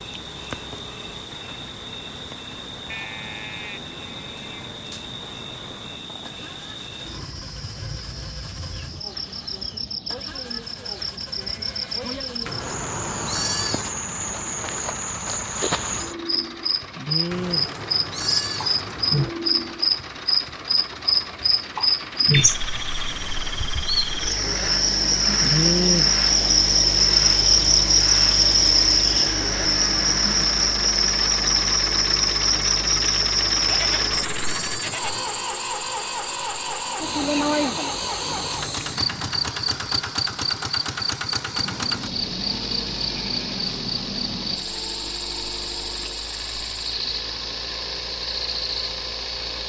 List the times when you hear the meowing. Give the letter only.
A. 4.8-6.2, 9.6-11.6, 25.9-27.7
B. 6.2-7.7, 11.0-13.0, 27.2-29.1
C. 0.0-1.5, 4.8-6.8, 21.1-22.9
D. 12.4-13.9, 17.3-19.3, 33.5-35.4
D.